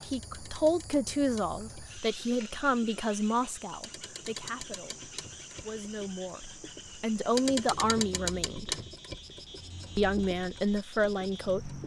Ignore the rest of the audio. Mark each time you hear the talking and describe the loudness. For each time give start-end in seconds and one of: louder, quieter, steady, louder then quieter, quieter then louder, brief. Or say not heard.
0.1-8.8 quieter then louder
9.9-11.8 brief.